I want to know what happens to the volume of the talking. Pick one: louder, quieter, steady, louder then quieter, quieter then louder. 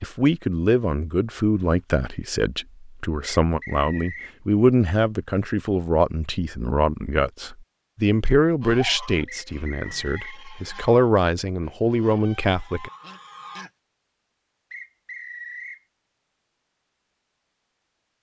steady.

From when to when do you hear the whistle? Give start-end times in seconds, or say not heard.
3.4-4.3, 9.2-10.4, 14.7-15.8.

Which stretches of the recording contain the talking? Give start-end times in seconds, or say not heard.
0.0-12.9.